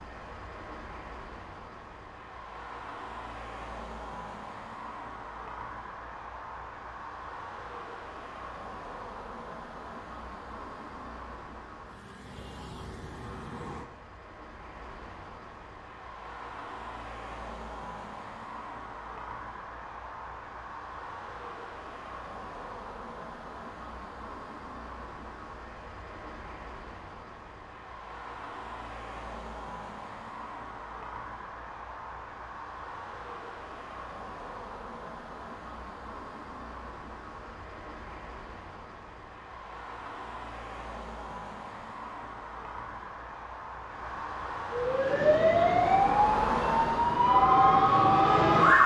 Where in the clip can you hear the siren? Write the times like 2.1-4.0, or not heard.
44.7-48.8.